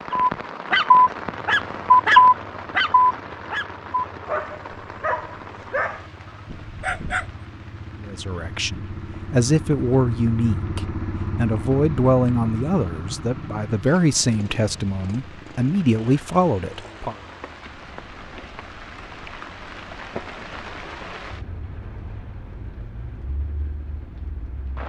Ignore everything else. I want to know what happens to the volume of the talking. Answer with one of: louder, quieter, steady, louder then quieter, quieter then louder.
steady.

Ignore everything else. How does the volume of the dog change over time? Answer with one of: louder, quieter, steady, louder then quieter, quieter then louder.
quieter.